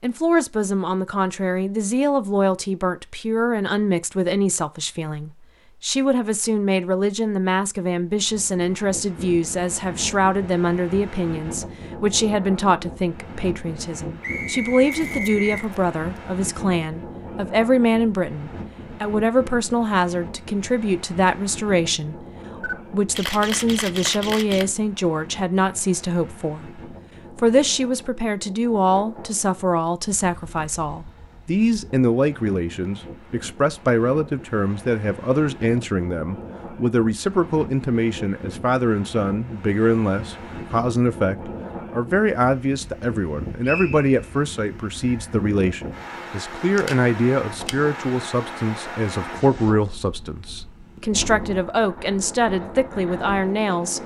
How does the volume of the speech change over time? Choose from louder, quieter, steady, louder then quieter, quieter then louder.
steady.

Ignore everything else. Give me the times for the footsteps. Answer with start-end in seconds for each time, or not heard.
not heard.